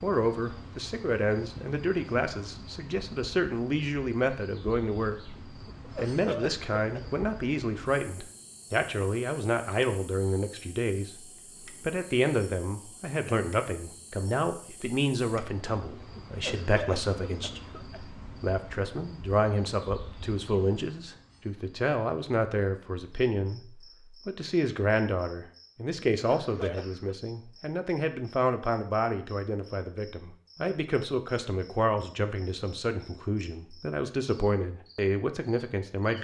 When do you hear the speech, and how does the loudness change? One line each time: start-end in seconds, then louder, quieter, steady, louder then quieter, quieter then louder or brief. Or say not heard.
0.0-36.1 steady.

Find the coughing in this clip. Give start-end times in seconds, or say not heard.
5.7-7.2, 16.1-18.1, 26.1-27.1.